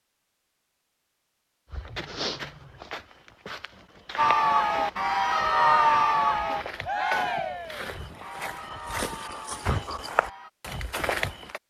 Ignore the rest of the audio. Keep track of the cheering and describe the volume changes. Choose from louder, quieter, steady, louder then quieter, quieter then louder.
quieter.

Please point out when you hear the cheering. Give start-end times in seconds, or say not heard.
4.2-10.5.